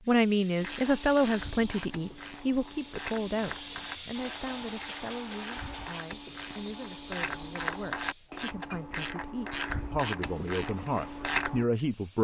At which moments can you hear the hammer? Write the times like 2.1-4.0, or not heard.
4.1-6.0.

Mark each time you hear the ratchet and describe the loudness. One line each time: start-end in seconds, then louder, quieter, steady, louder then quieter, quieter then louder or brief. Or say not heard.
0.6-11.7 louder.